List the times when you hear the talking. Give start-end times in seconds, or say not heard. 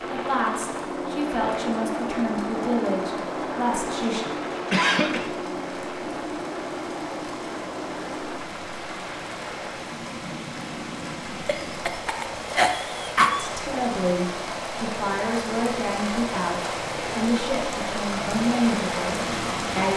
0.1-4.2, 13.3-19.9.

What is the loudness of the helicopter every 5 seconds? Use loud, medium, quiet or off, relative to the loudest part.
loud, loud, medium, loud.